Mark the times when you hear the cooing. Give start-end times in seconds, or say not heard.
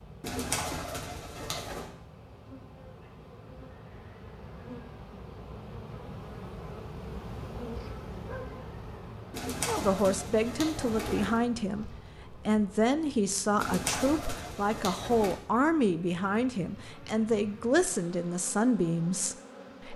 0.2-1.9, 9.3-11.4, 13.6-15.3.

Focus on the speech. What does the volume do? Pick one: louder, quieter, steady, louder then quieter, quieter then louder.
steady.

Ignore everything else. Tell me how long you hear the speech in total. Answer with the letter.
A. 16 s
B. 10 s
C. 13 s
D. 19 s
B.